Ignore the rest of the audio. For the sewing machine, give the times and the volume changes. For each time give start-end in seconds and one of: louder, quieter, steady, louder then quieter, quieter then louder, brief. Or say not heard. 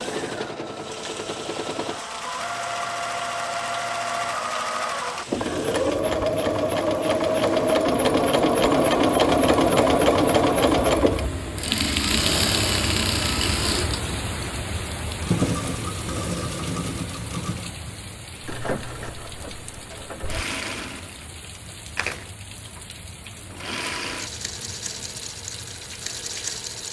0.0-26.8 louder then quieter.